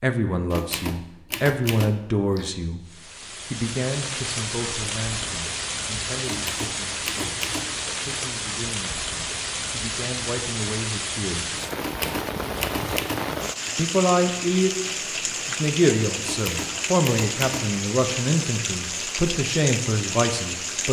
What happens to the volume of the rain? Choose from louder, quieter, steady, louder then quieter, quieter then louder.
steady.